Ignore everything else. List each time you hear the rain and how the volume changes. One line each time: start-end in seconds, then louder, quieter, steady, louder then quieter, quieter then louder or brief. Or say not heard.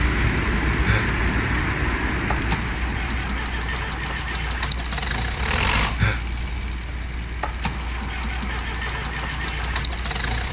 0.0-10.4 quieter.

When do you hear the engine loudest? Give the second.
6 s.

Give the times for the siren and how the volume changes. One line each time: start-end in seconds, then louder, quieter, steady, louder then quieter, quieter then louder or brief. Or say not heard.
not heard.